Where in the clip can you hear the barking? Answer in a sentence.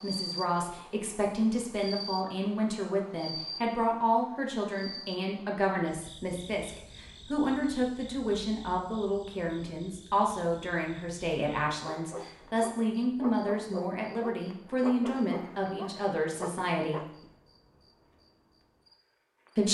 You can hear the barking from 11.8 to 17.1 s.